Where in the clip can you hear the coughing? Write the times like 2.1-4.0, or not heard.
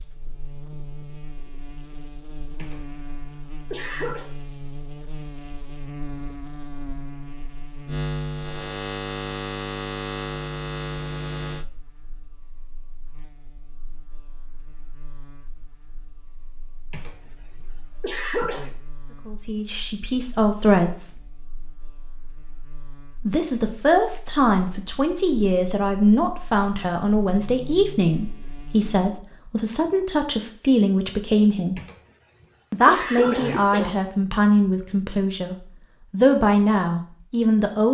2.5-4.3, 16.9-18.8, 31.8-34.0.